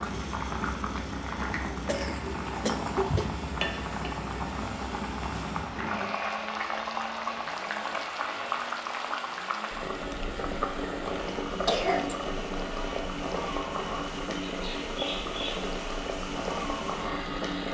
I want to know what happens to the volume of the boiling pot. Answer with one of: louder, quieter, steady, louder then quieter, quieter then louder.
steady.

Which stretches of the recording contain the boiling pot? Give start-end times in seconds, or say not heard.
0.0-17.6.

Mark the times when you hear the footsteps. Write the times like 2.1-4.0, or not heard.
not heard.